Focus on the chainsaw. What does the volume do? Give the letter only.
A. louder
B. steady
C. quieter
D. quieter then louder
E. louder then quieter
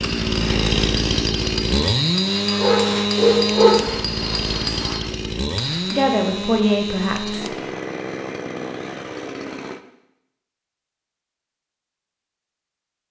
C.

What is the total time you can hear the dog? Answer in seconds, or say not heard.
2 s.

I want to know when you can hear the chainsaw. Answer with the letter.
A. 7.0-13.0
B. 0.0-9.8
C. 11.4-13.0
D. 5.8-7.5
B.